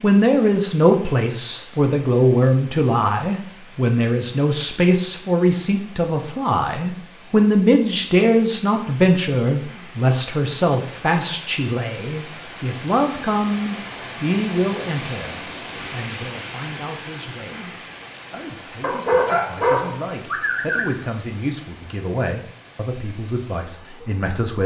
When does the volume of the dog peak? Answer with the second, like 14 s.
19 s.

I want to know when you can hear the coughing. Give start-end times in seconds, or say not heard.
not heard.